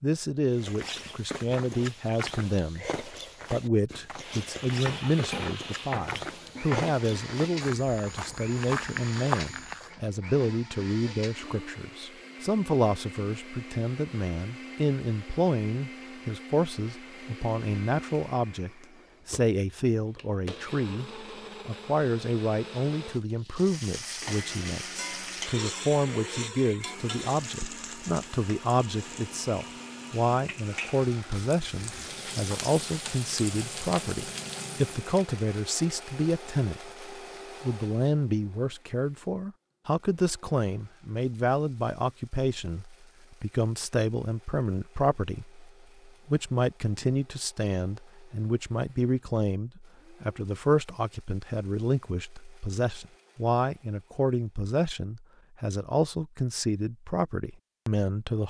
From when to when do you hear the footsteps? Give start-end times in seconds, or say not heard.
0.5-9.9.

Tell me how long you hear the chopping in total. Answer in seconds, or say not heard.
not heard.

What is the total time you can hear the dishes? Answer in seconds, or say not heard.
2 s.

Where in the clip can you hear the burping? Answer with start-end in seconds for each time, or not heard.
not heard.